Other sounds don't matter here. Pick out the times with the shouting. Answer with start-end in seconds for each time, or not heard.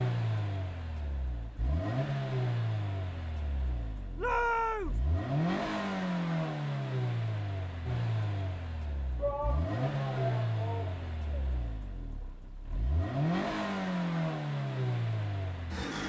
4.2-5.0, 9.2-11.6.